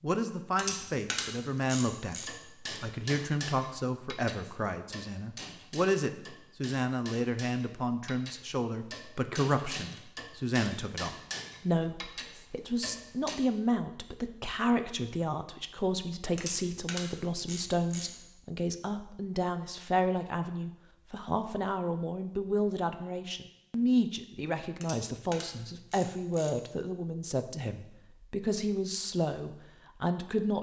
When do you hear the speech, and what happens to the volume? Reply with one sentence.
The speech can be heard from 0.0 to 30.5 s, at a steady volume.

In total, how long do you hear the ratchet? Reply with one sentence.
You can hear the ratchet for 5 seconds altogether.